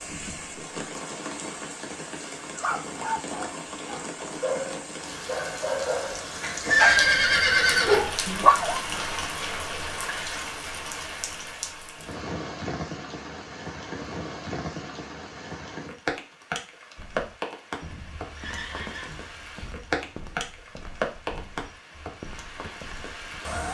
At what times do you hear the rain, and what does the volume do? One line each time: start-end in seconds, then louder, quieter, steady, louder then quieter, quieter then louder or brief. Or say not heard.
0.0-23.6 steady.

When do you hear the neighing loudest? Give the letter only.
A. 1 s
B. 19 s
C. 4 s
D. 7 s
D.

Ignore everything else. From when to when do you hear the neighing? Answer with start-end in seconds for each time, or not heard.
6.6-8.1, 18.4-19.2.